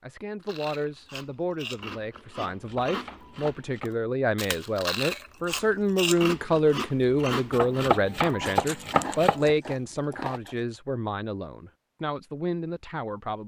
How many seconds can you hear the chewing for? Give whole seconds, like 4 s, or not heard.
10 s.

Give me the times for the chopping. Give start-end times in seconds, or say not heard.
2.5-4.0, 7.5-9.4.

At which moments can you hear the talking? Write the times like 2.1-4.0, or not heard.
0.0-13.4.